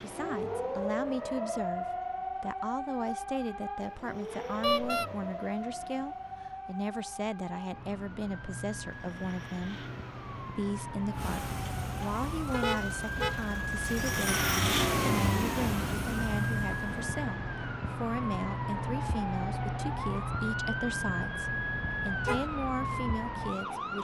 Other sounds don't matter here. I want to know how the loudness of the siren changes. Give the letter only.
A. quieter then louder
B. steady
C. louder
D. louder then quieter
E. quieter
A.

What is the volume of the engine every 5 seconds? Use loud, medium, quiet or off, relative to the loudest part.
quiet, quiet, loud, loud, off.